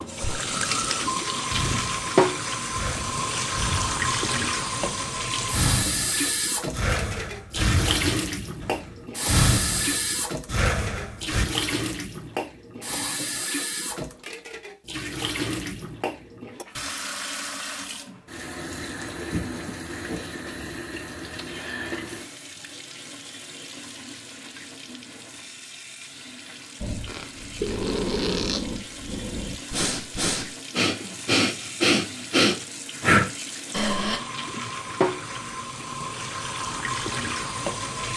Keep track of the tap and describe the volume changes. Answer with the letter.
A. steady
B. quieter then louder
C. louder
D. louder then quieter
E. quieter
B.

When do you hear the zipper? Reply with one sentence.
The zipper can be heard from 27.1 to 28.6 s.